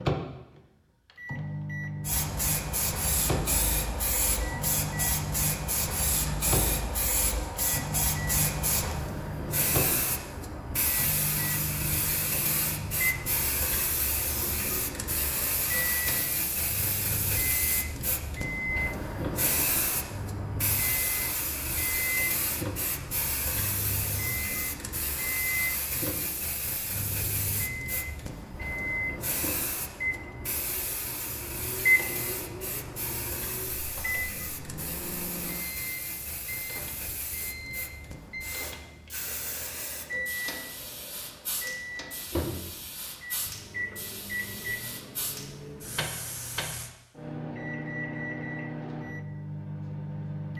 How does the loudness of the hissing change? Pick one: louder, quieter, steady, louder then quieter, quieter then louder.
quieter.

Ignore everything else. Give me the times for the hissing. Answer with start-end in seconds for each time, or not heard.
2.0-46.9.